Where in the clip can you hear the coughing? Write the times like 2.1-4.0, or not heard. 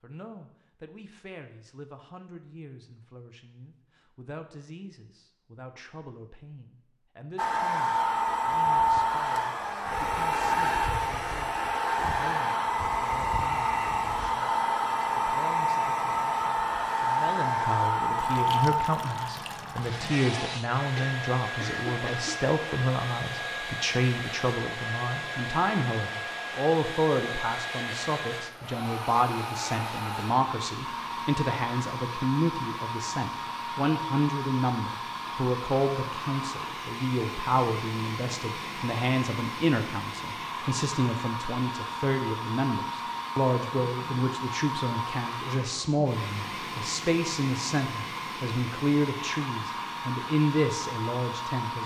20.9-22.4.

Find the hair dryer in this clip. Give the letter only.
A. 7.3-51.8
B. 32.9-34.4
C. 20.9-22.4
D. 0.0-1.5
A.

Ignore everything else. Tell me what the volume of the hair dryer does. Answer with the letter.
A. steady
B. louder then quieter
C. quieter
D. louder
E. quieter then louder
C.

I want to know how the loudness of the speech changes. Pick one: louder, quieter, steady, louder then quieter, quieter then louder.
louder.